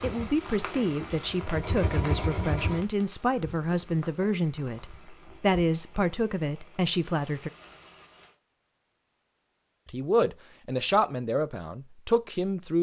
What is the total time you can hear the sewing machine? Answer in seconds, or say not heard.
3 s.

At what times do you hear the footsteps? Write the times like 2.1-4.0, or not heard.
not heard.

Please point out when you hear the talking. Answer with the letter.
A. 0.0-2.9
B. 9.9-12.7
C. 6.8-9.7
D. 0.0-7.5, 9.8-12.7
D.